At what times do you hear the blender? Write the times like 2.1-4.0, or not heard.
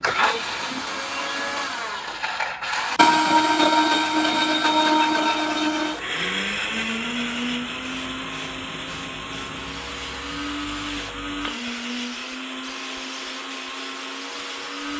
0.0-14.9.